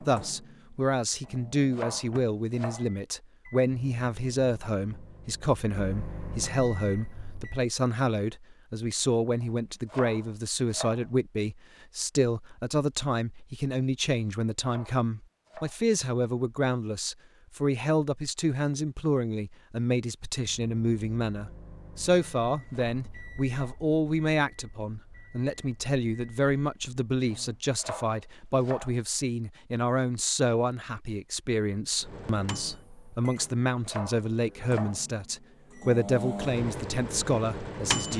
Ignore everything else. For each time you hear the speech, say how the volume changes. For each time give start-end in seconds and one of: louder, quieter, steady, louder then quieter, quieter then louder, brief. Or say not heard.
0.0-38.1 steady.